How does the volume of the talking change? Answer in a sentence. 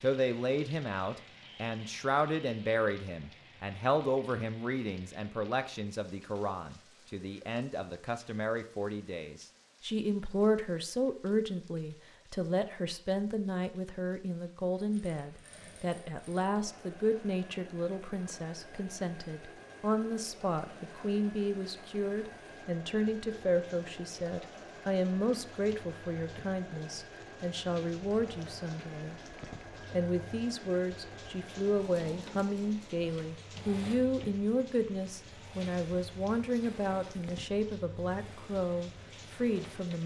The volume of the talking stays about the same.